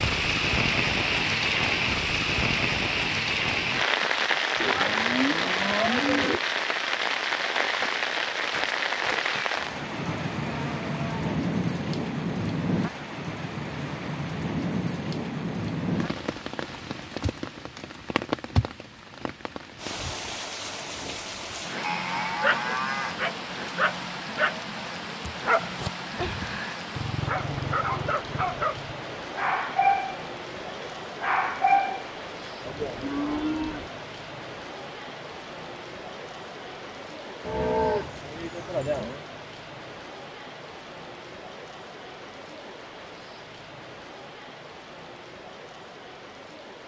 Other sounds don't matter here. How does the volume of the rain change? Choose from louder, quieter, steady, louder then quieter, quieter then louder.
quieter.